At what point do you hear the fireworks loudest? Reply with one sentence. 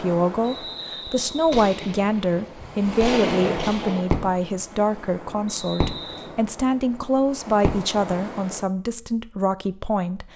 The volume of the fireworks peaks at 3 seconds.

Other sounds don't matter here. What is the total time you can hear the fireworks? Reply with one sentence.
You can hear the fireworks for 4 seconds altogether.